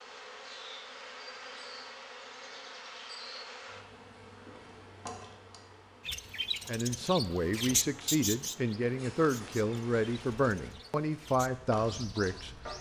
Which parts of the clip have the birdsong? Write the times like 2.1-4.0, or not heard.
6.0-12.7.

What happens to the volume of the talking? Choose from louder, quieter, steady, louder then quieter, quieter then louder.
steady.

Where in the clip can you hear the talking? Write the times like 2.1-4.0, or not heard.
6.7-12.5.